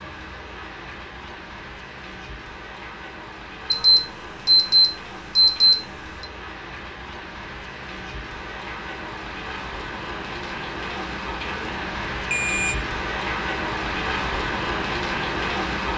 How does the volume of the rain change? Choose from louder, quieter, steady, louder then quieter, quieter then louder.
louder.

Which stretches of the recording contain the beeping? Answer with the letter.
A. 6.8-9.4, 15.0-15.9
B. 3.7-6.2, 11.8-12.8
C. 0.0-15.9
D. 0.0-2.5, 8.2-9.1
B.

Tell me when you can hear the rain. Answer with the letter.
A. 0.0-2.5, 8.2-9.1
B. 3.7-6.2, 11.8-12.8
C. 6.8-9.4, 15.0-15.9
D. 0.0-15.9
D.